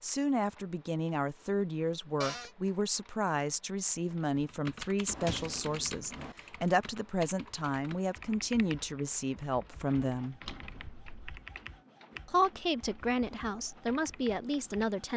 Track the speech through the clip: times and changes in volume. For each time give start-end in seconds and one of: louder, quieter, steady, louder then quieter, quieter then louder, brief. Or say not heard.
0.0-10.4 steady
12.2-15.1 brief.